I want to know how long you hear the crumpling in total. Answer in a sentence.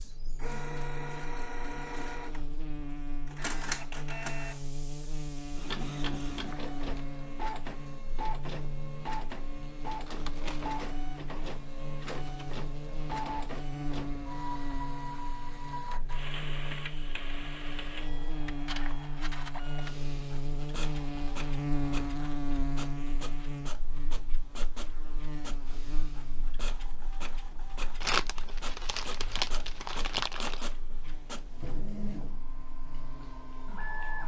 You can hear the crumpling for 3 seconds altogether.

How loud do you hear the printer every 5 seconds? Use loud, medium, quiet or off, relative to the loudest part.
loud, loud, loud, loud, medium, medium, loud.